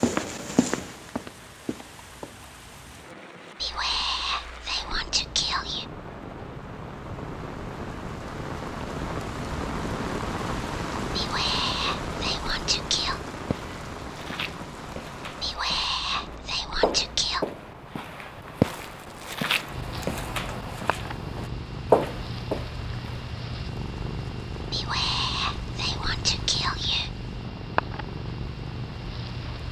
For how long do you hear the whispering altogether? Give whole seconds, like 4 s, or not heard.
9 s.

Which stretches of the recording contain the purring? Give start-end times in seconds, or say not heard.
19.6-29.6.